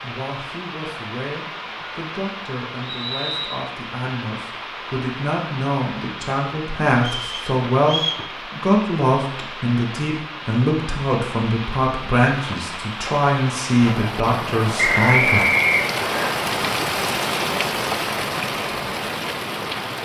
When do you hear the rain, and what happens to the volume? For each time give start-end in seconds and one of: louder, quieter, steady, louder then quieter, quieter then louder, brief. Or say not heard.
0.0-20.0 louder.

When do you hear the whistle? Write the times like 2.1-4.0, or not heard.
2.8-3.6, 7.0-8.2, 14.8-16.3.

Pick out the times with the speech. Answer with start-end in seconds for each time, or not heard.
0.0-15.4.